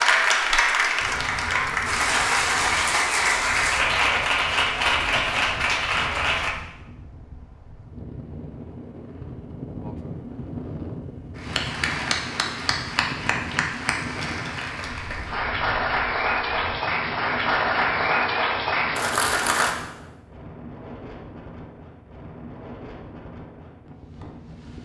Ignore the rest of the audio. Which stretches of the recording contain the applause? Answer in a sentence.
You can hear the applause from 0.0 to 6.5 s and from 11.3 to 19.7 s.